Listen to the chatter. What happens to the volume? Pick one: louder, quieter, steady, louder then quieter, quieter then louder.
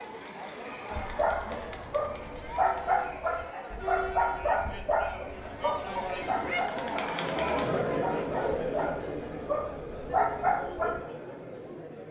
louder then quieter.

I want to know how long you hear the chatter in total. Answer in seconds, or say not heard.
12 s.